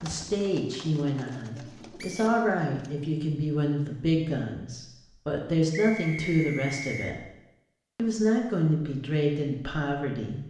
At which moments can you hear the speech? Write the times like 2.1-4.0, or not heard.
0.0-7.2, 8.0-10.4.